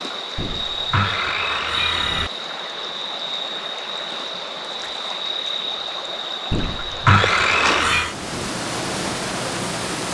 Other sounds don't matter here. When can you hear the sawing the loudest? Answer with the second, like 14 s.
7 s.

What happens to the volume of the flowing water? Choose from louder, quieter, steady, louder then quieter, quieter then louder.
steady.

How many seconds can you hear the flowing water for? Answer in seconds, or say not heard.
10 s.